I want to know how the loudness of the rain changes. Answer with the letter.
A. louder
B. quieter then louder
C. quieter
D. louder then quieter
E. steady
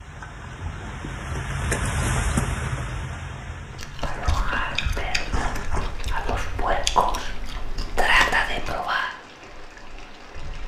C.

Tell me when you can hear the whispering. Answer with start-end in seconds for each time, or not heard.
4.0-7.3, 8.0-9.2.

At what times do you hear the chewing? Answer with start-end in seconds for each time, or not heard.
3.7-8.9.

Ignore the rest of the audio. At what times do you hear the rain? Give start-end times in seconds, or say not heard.
0.0-10.6.